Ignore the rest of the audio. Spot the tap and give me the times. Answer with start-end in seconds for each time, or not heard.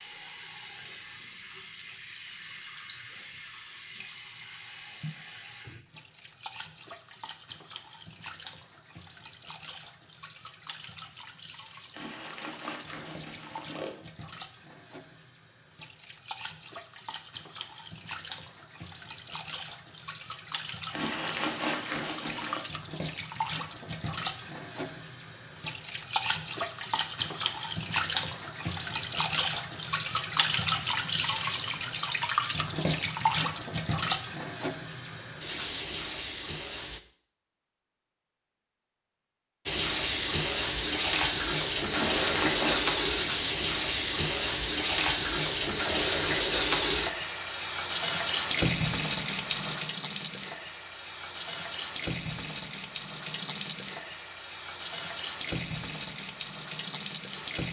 0.0-37.0, 39.6-57.6.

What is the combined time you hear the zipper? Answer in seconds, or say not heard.
5 s.